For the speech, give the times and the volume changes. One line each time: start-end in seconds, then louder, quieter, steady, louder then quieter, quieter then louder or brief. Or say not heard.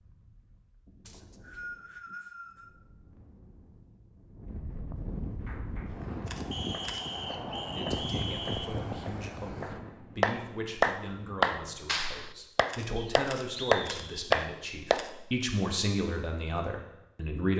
7.8-17.5 louder.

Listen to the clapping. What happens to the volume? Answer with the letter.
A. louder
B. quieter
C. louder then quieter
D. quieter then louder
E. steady
A.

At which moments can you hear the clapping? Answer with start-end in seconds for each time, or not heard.
5.4-15.1.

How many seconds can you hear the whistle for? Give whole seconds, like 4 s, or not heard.
5 s.